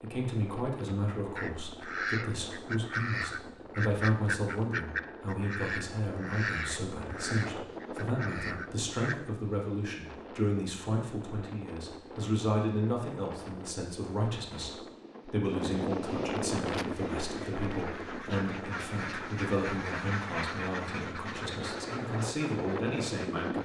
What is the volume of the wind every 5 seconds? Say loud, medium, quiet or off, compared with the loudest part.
medium, medium, medium, loud, loud.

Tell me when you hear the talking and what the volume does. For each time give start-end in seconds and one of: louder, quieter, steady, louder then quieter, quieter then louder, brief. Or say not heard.
0.0-23.6 steady.